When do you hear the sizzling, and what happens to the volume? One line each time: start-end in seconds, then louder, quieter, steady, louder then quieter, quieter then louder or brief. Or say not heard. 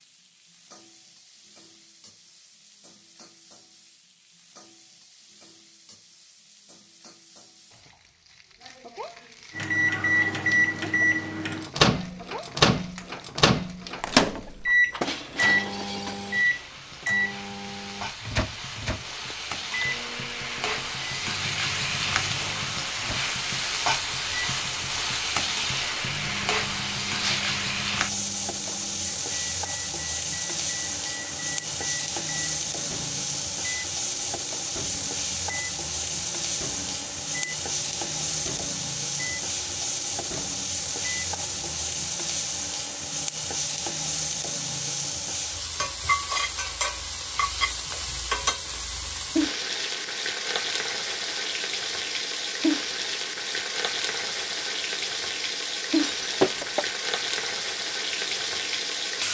0.0-59.3 louder.